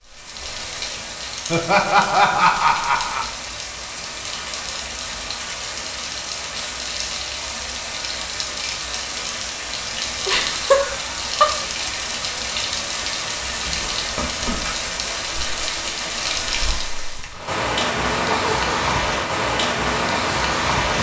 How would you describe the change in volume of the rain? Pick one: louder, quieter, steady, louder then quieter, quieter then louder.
louder.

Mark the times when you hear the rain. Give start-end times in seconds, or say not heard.
0.0-20.9.